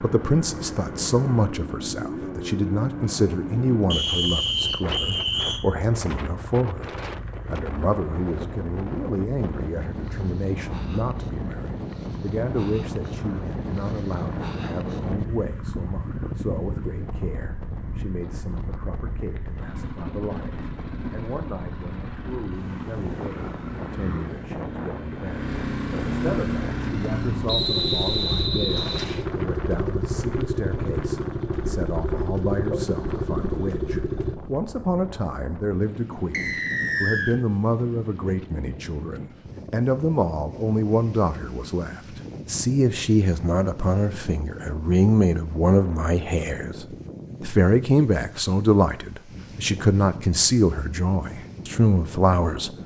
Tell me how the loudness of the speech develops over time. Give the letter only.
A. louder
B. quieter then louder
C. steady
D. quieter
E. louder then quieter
B.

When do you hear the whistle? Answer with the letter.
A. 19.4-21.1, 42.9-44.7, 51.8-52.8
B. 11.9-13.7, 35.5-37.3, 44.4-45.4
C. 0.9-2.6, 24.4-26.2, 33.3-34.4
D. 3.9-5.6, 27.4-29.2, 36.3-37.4
D.